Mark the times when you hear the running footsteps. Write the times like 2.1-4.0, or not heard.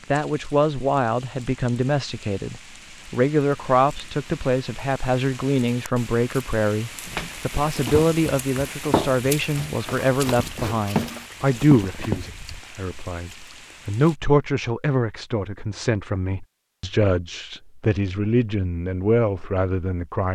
7.0-12.3.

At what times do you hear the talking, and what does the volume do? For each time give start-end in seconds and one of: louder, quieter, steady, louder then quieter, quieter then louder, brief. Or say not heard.
0.1-20.2 steady.